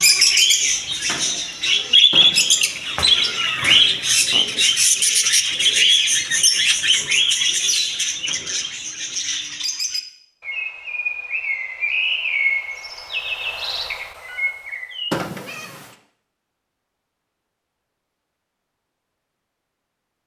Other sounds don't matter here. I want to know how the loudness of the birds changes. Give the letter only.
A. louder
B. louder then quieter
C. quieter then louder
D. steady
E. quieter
E.